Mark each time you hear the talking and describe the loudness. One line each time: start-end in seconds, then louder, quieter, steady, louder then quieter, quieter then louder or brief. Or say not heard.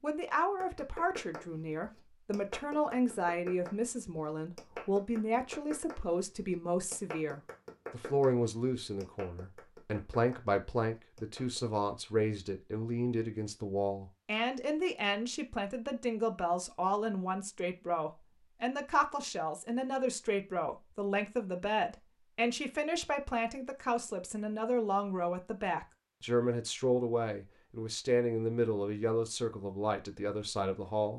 0.0-31.1 steady.